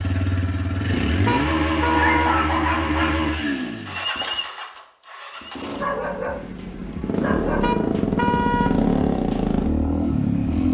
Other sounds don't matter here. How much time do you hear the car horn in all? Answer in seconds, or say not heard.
2 s.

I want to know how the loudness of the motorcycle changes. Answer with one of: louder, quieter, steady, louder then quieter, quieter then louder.
quieter then louder.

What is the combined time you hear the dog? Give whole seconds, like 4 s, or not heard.
3 s.